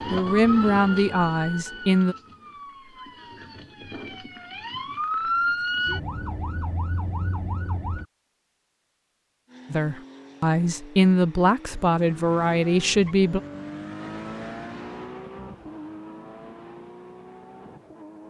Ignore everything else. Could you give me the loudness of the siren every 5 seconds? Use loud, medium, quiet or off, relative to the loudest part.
medium, loud, off, off.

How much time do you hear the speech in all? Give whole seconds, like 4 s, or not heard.
6 s.